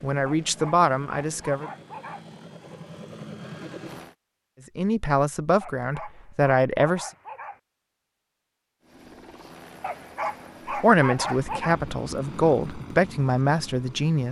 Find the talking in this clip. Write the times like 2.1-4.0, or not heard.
0.0-1.7, 4.8-7.1, 10.7-14.2.